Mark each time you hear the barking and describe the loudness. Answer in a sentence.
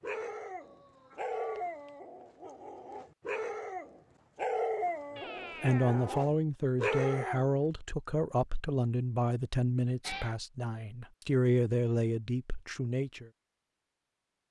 You can hear the barking from 0.0 to 7.5 s, getting quieter then louder.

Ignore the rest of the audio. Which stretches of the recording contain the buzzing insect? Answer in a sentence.
You can't hear the buzzing insect here.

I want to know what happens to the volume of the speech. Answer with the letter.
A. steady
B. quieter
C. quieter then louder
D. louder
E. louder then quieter
A.